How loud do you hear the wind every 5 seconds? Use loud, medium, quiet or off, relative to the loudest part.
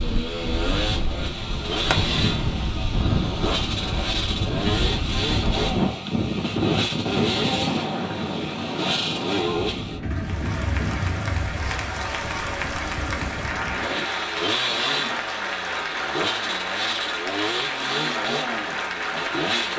loud, loud, medium, off.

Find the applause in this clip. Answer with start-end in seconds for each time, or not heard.
10.1-19.7.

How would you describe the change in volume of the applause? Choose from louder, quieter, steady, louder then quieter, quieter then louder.
steady.